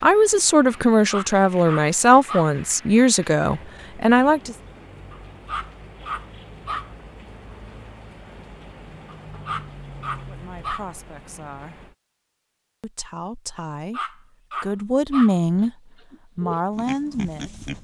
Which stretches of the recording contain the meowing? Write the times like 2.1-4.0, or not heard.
not heard.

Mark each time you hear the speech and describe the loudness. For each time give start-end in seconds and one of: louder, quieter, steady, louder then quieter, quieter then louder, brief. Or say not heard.
0.0-4.5 steady
10.2-11.9 brief
12.8-15.7 brief
16.4-17.6 brief.